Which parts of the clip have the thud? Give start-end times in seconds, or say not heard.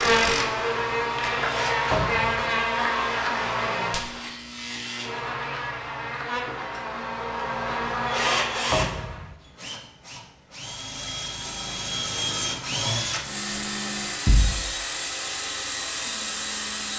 1.9-2.4, 8.7-9.2, 14.2-14.7.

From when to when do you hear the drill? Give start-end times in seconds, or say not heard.
0.0-1.8, 8.1-16.9.